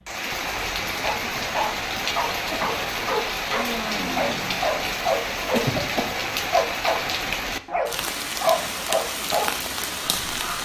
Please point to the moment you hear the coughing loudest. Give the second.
6 s.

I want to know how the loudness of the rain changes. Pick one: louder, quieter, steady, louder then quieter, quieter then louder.
steady.